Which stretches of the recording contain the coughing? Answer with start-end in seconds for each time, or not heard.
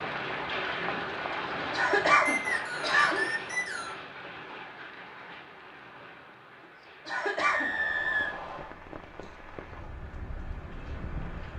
1.7-3.2, 7.0-7.8.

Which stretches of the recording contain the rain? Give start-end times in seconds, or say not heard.
0.0-11.5.